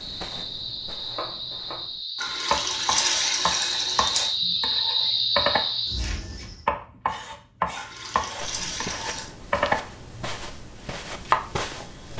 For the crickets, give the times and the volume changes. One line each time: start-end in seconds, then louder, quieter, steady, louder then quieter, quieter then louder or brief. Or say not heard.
0.0-6.7 louder.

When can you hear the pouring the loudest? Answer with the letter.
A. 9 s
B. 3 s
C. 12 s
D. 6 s
B.